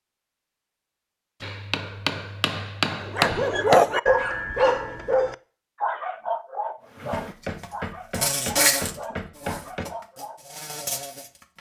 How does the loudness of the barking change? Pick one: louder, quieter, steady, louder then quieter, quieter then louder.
quieter.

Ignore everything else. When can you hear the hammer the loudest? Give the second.
3 s.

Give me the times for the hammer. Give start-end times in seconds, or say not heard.
1.4-3.9, 7.1-9.8.